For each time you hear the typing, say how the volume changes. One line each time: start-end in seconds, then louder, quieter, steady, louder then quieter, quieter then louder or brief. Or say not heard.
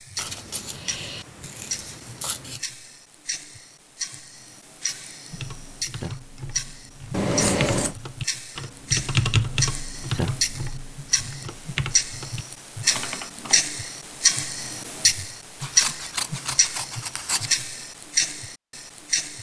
5.3-13.6 louder then quieter.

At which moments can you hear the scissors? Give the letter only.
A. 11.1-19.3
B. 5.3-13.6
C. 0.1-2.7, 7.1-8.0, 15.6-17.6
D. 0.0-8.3
C.